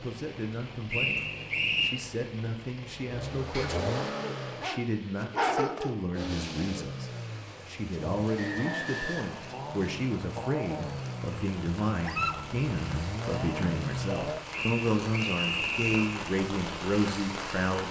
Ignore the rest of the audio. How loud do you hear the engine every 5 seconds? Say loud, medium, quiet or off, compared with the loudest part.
loud, loud, loud, off.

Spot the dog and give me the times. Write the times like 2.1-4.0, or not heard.
3.5-6.0, 12.0-12.4.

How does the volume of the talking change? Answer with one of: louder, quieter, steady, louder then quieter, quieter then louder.
louder.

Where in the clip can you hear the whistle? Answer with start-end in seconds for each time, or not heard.
0.9-1.9, 8.3-9.4, 14.5-16.1.